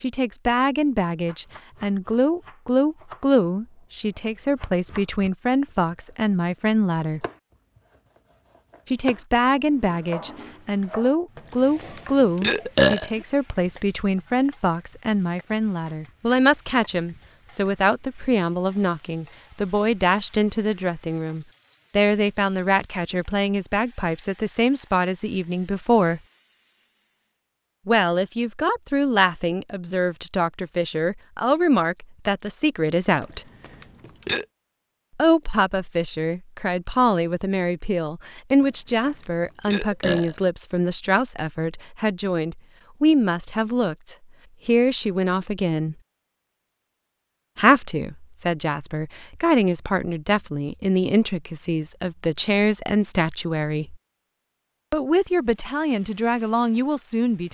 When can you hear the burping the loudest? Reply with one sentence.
The loudest moment of the burping is at 13 seconds.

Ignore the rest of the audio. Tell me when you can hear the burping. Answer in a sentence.
You can hear the burping from 11.3 to 13.2 s, from 33.2 to 34.5 s and from 38.6 to 40.5 s.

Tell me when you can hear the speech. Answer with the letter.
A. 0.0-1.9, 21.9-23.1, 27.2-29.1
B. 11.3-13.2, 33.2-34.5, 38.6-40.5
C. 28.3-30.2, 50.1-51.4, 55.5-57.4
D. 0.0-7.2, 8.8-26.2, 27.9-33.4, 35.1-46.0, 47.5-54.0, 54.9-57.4
D.